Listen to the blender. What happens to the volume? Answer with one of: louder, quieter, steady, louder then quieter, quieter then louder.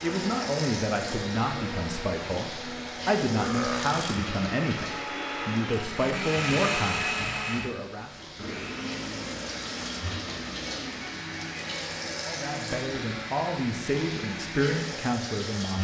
louder then quieter.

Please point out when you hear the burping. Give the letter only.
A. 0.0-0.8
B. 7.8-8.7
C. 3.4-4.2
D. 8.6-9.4
C.